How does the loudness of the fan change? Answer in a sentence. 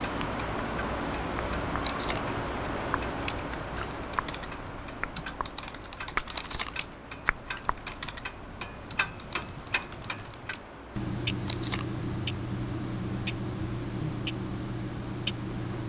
The volume of the fan goes down.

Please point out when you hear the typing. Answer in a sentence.
The typing can be heard from 3.0 to 11.0 s.